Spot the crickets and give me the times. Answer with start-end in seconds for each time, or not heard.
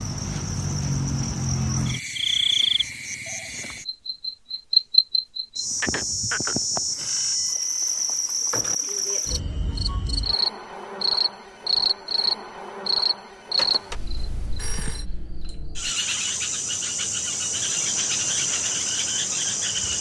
0.0-19.9.